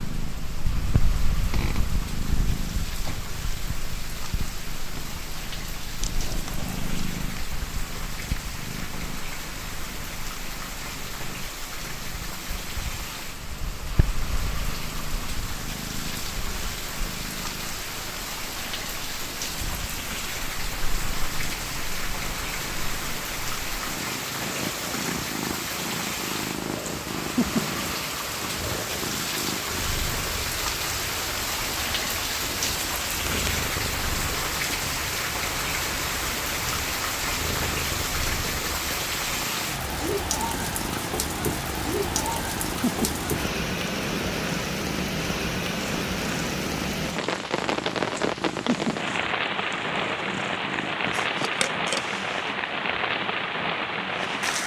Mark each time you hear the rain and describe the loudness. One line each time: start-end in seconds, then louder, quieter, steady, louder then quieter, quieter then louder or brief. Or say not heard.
0.0-54.6 louder.